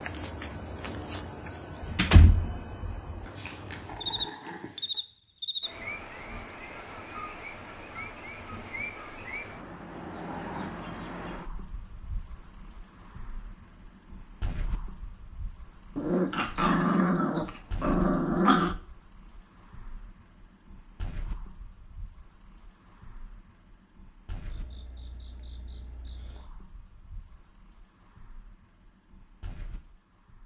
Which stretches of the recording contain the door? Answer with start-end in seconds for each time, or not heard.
1.8-3.0.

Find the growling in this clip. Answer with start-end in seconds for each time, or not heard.
3.2-5.0, 15.9-18.8.